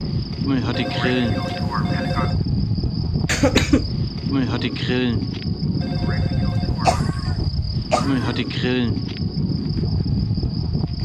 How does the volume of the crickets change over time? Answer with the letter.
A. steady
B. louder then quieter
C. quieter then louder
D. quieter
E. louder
A.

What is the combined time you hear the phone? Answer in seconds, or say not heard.
3 s.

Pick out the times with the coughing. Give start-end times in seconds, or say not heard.
3.2-3.9, 6.8-8.3.